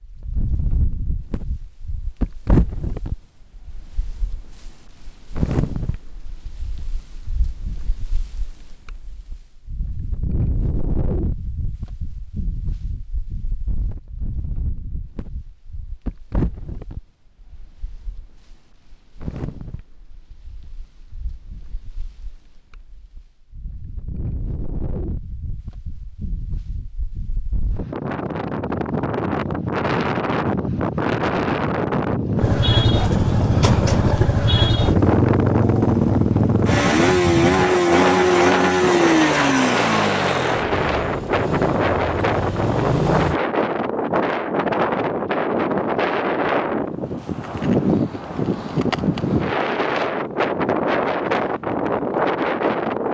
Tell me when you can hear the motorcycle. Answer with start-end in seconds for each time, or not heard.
32.4-43.4.